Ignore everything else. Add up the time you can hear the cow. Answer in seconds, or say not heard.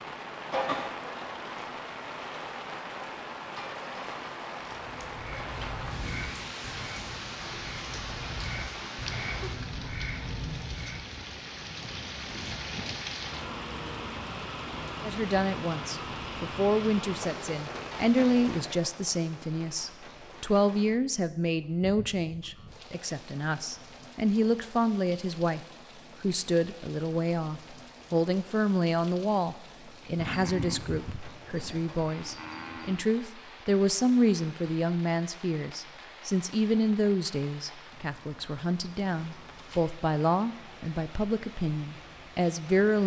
3 s.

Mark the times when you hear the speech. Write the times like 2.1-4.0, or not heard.
15.0-43.0.